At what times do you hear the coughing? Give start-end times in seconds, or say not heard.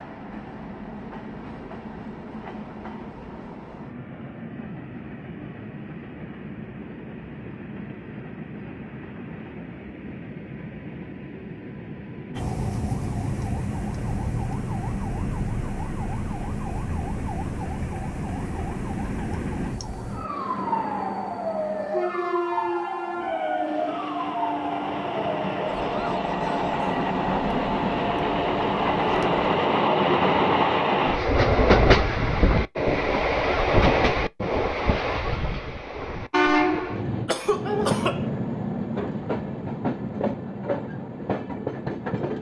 37.2-38.2.